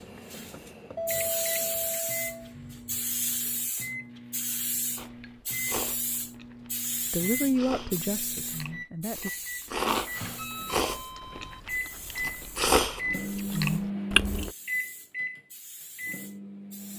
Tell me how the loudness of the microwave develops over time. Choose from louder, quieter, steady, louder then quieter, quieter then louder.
louder.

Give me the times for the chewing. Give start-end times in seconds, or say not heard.
5.0-14.5.